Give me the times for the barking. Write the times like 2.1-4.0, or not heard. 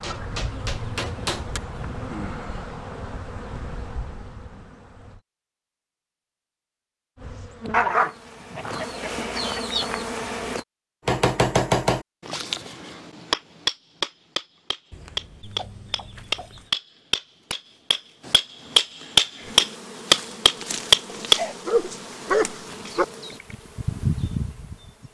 7.7-8.9, 21.1-23.1.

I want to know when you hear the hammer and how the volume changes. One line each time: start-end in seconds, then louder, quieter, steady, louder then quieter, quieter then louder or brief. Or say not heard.
0.0-1.6 brief
11.1-21.4 louder.